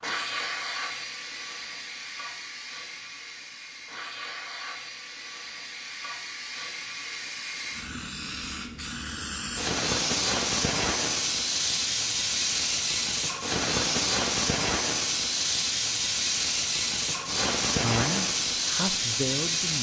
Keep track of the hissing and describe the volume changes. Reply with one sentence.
The volume of the hissing goes up.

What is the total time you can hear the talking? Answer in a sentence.
The talking can be heard for 2 seconds in total.